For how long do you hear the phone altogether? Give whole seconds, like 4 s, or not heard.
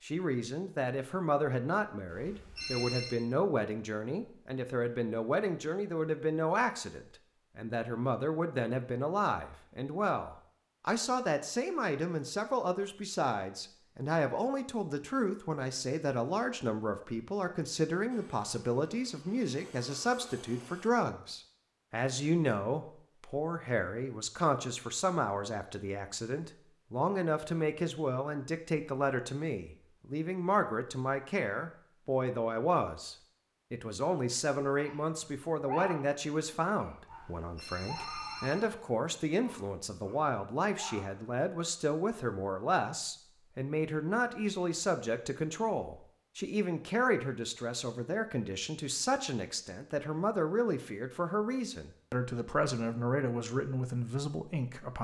3 s.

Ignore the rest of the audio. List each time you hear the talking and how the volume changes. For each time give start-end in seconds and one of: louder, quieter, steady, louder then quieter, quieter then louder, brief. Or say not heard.
0.0-55.0 steady.